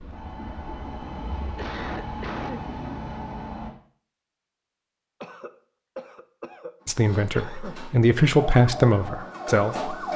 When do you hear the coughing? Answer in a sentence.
The coughing can be heard from 1.4 to 2.6 s and from 5.2 to 7.8 s.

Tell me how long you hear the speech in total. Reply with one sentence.
The speech can be heard for 3 seconds in total.